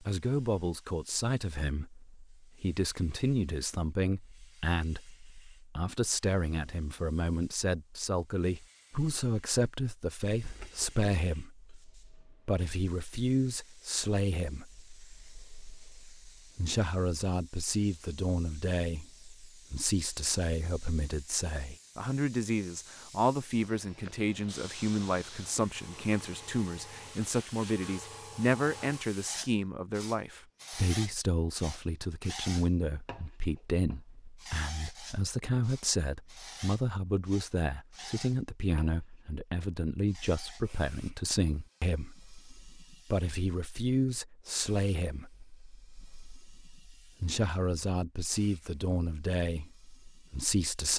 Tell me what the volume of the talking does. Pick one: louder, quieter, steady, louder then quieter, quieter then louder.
steady.